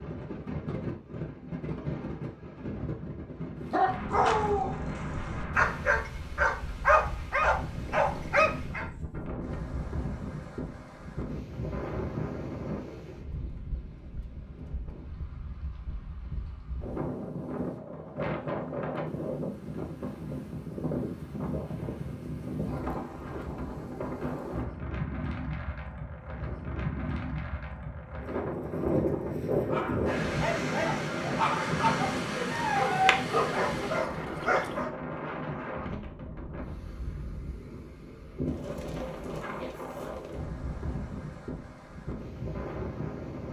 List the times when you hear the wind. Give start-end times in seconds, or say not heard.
0.0-43.4.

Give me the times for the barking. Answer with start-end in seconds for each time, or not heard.
3.7-8.8, 29.6-34.9.